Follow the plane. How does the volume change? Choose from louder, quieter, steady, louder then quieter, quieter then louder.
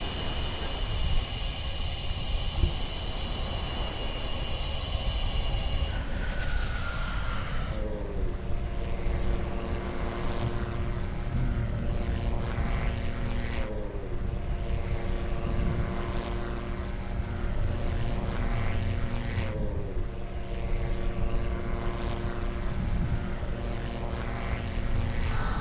steady.